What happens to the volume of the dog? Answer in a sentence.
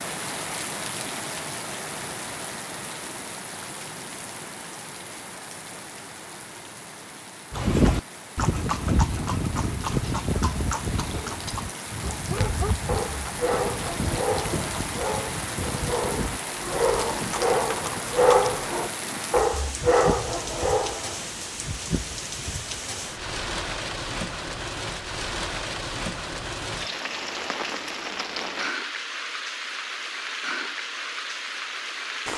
The volume of the dog goes up.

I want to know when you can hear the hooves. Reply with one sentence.
The hooves can be heard from 7.5 to 19.2 s.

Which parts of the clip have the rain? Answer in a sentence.
You can hear the rain from 0.0 to 32.3 s.